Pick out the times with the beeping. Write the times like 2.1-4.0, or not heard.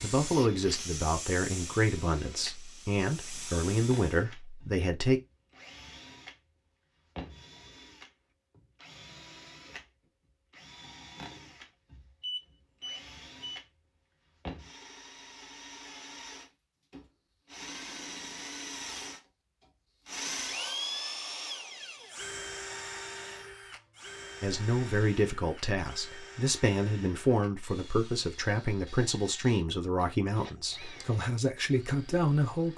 12.2-13.6.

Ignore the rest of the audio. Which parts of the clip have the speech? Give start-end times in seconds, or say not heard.
0.0-5.2, 24.4-32.7.